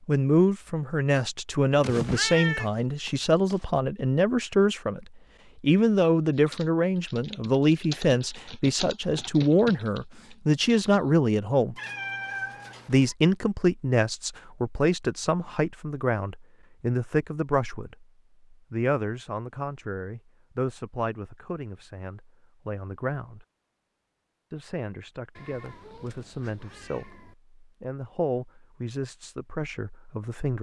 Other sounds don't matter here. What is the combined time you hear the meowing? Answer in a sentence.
The meowing can be heard for 5 seconds in total.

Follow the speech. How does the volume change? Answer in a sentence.
The loudness of the speech goes down.